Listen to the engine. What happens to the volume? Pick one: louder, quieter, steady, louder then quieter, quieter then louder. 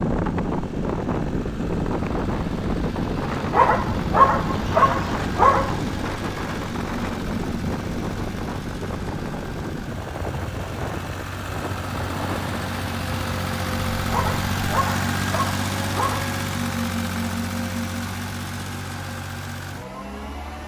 louder.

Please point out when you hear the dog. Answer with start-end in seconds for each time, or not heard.
3.5-5.8, 14.1-16.4.